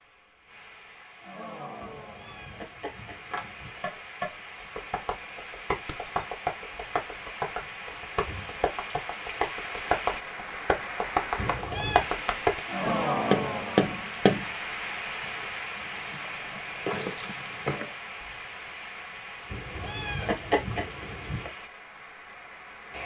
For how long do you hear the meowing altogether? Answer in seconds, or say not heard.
5 s.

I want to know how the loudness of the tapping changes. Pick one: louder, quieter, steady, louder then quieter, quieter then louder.
louder.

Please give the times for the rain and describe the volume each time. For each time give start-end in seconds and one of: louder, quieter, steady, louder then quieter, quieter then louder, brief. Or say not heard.
0.0-23.0 louder then quieter.